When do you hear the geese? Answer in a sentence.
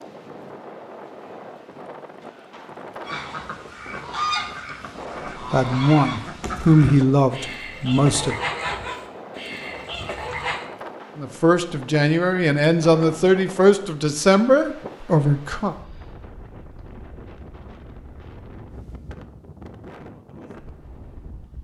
You can hear the geese from 3.0 to 10.7 s.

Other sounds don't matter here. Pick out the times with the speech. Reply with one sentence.
You can hear the speech from 5.5 to 8.3 s and from 11.2 to 15.8 s.